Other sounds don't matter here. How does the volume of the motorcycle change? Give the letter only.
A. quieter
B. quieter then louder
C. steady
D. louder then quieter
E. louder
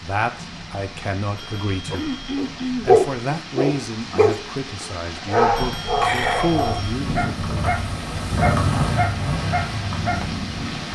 D.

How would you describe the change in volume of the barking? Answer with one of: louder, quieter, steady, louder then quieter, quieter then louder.
quieter.